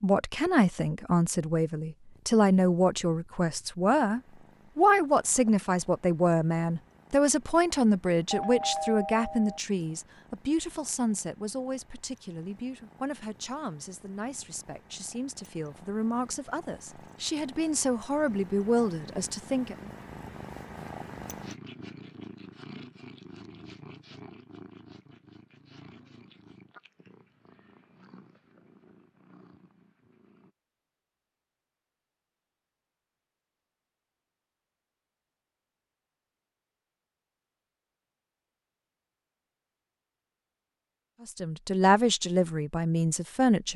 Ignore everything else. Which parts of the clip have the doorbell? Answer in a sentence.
The doorbell can be heard from 8.3 to 9.6 s.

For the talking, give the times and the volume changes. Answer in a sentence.
You can hear the talking from 0.0 to 19.9 s, getting quieter then louder; and briefly from 41.2 to 43.7 s.